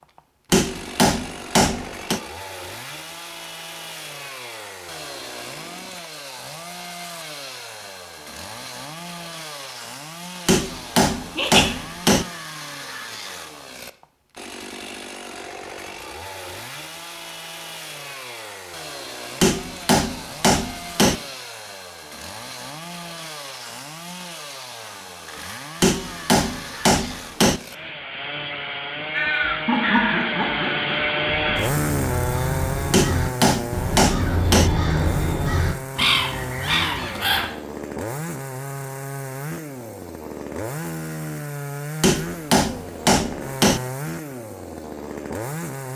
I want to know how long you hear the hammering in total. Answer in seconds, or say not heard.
11 s.